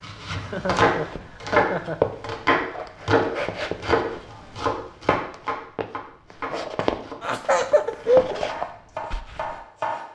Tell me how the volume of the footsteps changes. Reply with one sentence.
The volume of the footsteps goes down, then up.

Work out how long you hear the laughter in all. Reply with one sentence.
The laughter can be heard for 3 seconds in total.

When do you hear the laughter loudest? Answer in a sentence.
The loudest moment of the laughter is at 8 seconds.